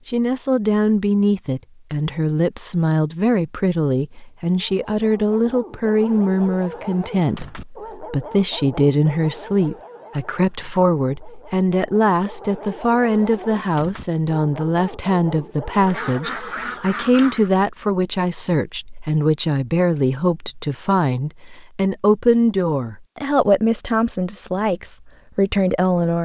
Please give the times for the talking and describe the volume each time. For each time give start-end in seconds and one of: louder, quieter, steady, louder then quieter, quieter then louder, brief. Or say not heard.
0.1-26.2 steady.